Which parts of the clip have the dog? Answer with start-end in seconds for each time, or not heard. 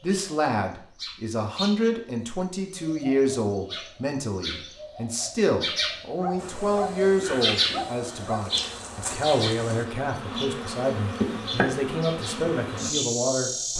6.2-8.4.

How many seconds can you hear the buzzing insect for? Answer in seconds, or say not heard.
7 s.